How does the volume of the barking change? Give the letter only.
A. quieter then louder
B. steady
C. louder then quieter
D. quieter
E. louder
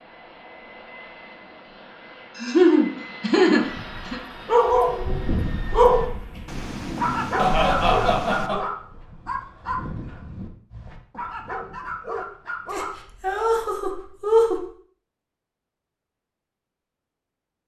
D.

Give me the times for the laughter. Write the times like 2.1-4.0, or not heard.
2.4-4.2, 7.3-8.6, 12.7-14.7.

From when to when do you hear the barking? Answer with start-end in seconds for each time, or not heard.
3.6-13.0.